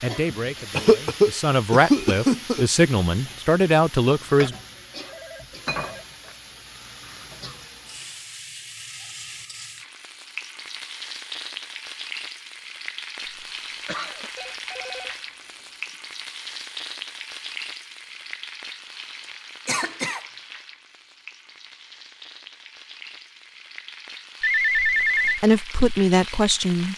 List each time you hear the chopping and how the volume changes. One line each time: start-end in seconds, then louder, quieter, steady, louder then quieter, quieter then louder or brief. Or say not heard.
not heard.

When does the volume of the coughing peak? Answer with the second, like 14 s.
1 s.